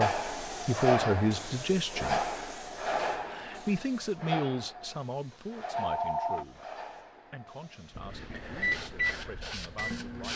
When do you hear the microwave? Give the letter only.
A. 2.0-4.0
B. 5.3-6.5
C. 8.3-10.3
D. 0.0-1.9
C.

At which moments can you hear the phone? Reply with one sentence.
You can hear the phone from 5.3 to 6.5 s.